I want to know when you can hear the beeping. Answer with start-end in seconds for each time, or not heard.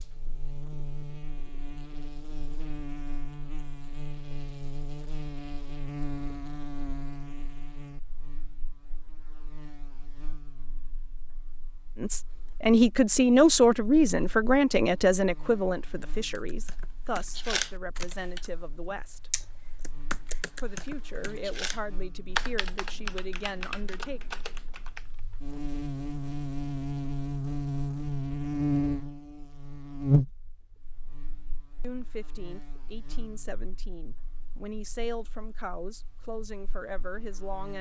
not heard.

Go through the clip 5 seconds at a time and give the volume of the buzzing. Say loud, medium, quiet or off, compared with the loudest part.
medium, medium, quiet, quiet, quiet, loud, loud, quiet.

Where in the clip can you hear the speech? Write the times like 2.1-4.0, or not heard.
11.9-19.3, 20.6-24.2, 31.8-37.7.